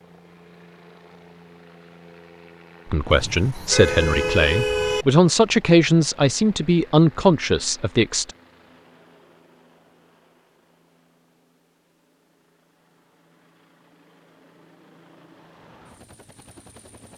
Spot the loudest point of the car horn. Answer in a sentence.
The loudest moment of the car horn is at 5 seconds.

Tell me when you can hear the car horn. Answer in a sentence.
The car horn can be heard from 3.1 to 5.0 s.